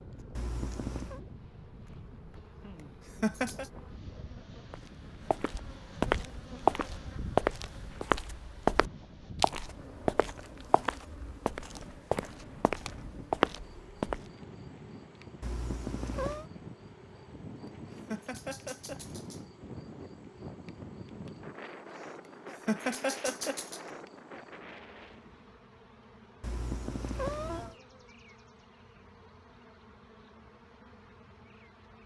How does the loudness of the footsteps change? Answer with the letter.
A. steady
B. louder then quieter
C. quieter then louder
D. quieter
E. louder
C.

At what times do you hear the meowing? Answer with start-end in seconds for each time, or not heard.
0.3-1.2, 15.4-16.5, 26.4-27.8.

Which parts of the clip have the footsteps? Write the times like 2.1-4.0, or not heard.
4.7-14.2.